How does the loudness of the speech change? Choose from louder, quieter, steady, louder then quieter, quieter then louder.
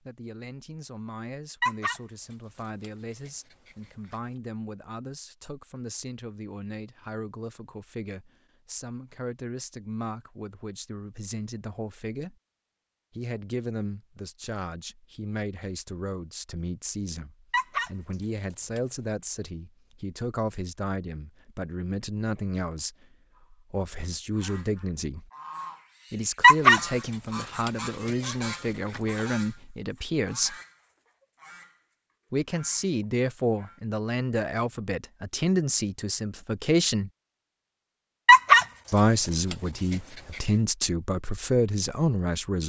louder.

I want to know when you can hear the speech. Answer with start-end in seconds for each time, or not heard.
0.0-12.3, 13.2-25.3, 26.1-30.6, 32.3-37.1, 38.9-42.6.